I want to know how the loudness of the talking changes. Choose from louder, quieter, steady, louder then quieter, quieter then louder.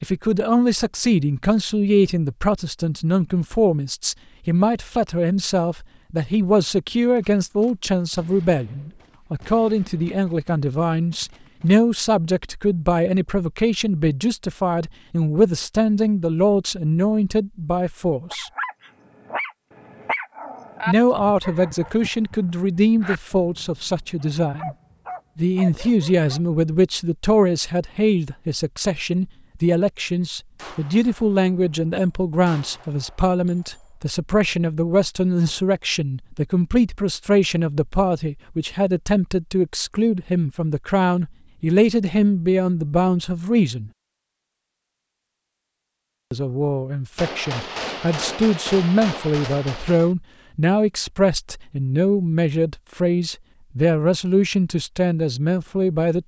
steady.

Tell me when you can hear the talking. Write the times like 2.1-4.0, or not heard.
0.0-18.5, 20.9-24.8, 25.4-43.9, 46.3-56.2.